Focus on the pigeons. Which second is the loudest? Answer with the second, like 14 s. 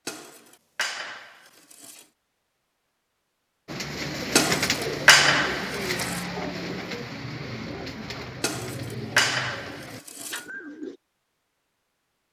5 s.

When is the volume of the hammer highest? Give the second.
5 s.